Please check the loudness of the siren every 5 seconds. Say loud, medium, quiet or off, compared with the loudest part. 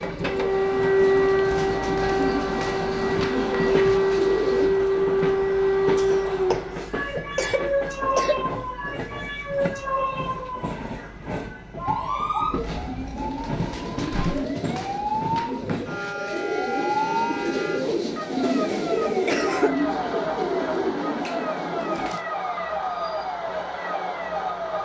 loud, loud, medium, medium, medium.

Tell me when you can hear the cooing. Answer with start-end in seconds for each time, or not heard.
0.0-4.8, 12.4-22.2.